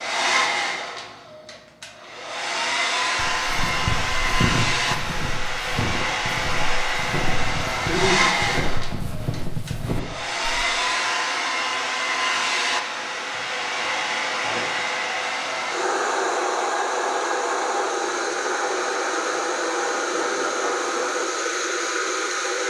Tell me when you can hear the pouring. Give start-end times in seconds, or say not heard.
not heard.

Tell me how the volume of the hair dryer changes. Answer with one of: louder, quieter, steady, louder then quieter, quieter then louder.
steady.